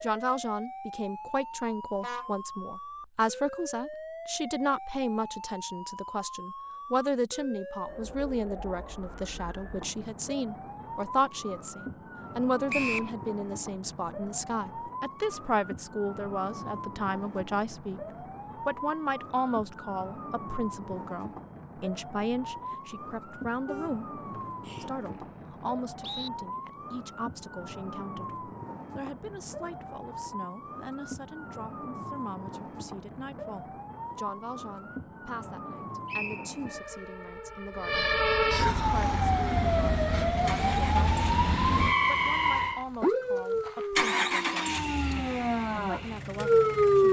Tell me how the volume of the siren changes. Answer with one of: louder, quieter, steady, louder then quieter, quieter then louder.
louder.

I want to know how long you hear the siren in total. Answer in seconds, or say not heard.
47 s.